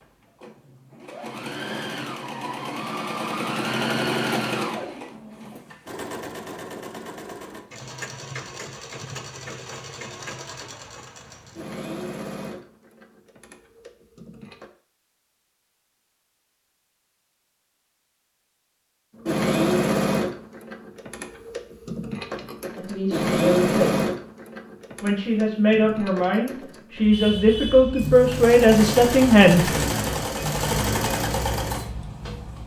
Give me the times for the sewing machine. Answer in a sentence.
You can hear the sewing machine from 0.0 to 14.7 s and from 19.2 to 32.6 s.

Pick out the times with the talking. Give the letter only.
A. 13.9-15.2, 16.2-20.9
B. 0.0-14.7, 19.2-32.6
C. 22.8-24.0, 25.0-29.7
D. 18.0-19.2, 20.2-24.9
C.